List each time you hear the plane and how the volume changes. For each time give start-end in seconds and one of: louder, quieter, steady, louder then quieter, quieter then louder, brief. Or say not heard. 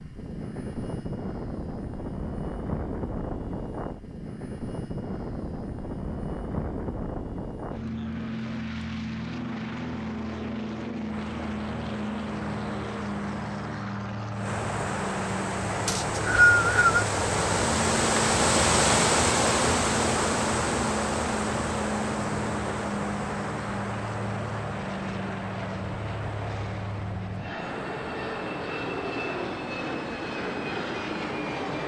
0.0-31.8 steady.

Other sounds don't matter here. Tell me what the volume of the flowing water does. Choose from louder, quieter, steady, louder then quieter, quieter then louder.
louder then quieter.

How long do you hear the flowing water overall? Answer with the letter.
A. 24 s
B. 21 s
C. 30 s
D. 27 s
B.